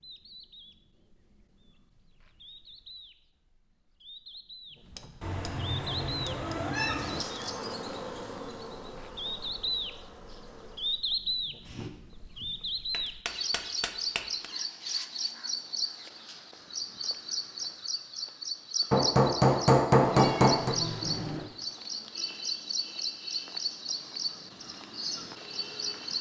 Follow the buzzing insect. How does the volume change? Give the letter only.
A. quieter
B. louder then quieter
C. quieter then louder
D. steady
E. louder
A.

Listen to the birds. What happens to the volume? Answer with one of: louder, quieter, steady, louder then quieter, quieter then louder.
louder.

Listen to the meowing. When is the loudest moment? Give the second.
7 s.